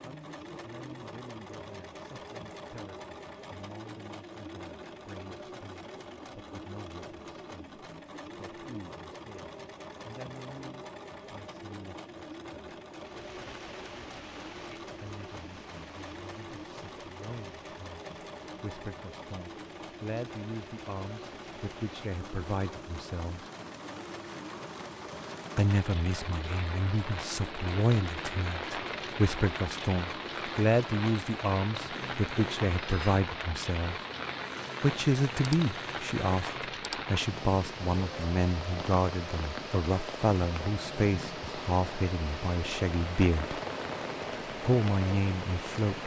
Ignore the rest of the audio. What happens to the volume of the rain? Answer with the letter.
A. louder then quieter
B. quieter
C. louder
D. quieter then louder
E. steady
C.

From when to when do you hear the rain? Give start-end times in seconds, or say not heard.
13.0-46.0.